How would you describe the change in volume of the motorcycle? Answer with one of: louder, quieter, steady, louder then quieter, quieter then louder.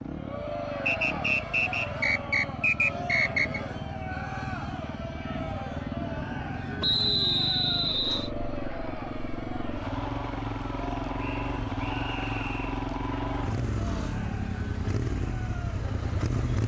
louder.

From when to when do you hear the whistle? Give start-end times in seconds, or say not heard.
0.8-3.6, 6.8-8.3, 11.2-12.7.